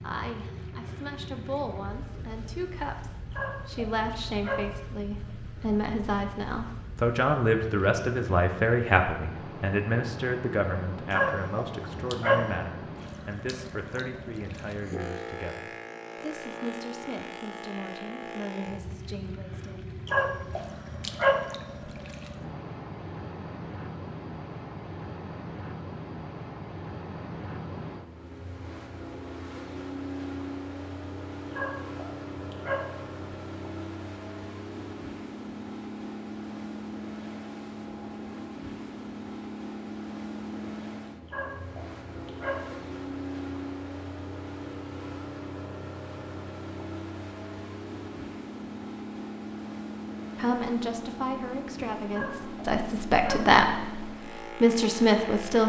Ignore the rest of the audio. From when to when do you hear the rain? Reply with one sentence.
You can't hear the rain here.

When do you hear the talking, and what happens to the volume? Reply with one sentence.
The talking can be heard from 0.0 to 19.8 s, getting louder then quieter; and from 50.4 to 55.6 s, getting louder.